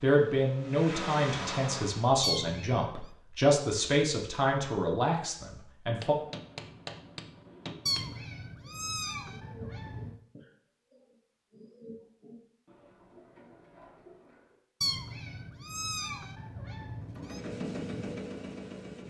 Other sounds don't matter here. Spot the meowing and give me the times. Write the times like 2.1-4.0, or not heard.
2.2-3.0, 7.8-10.2, 14.8-17.4.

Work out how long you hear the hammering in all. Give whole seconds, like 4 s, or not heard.
2 s.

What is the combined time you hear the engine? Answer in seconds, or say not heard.
4 s.